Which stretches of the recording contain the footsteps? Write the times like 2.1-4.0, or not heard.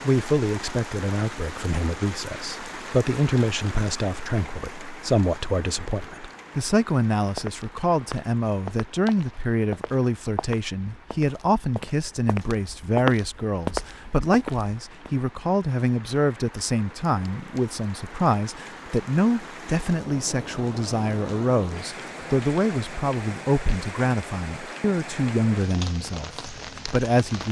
7.2-15.1.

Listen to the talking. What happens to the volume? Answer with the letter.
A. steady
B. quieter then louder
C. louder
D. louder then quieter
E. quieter
A.